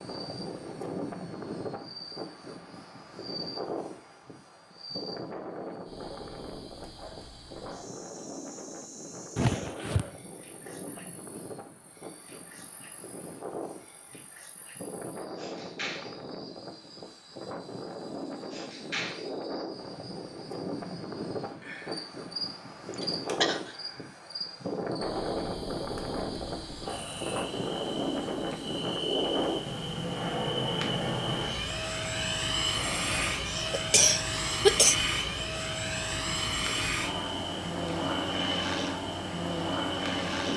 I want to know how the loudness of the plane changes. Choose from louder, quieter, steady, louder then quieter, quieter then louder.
louder.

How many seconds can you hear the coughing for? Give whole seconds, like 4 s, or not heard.
3 s.